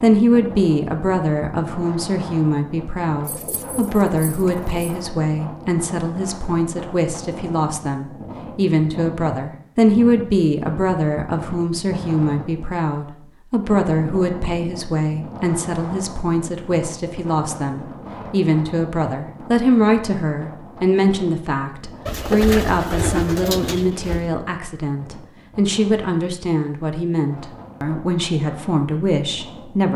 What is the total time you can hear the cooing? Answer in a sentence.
You can hear the cooing for 4 seconds altogether.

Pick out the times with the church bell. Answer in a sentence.
You can't hear the church bell here.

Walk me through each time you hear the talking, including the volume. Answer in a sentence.
You can hear the talking from 0.0 to 29.9 s, at a steady volume.